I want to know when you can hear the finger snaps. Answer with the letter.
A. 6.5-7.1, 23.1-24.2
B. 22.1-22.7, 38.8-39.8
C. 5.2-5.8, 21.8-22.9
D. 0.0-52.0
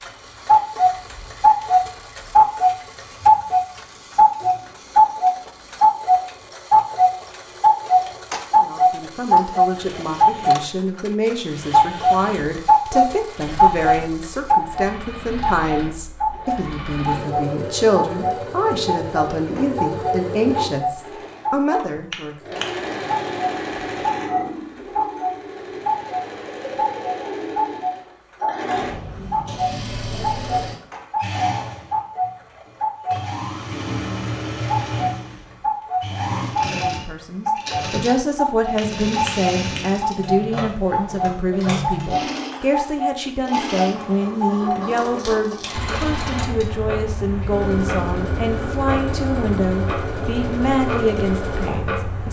B.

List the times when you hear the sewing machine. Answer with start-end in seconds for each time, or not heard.
0.0-52.0.